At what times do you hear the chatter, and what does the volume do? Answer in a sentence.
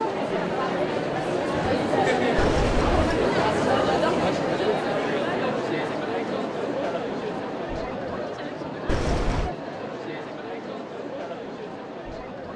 The chatter can be heard from 0.0 to 12.5 s, getting quieter.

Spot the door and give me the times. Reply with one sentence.
The door can be heard from 2.4 to 3.2 s and from 8.8 to 9.6 s.